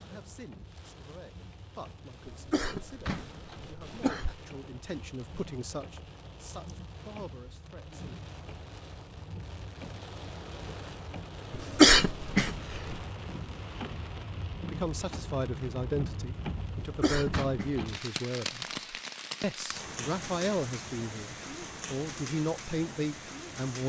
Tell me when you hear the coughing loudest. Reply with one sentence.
The loudest moment of the coughing is at 12 seconds.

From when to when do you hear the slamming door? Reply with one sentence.
The slamming door can be heard from 3.0 to 3.7 s and from 17.3 to 17.9 s.